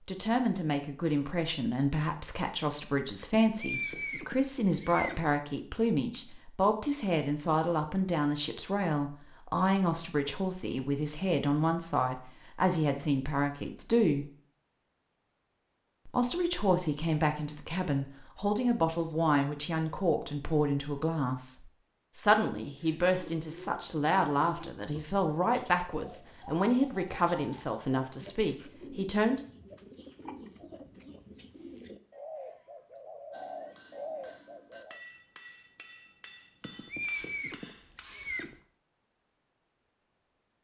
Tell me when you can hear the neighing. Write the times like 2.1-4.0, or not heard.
3.3-5.3, 36.6-38.6.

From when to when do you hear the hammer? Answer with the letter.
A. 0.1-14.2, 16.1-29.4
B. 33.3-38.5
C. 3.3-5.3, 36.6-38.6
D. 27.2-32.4
B.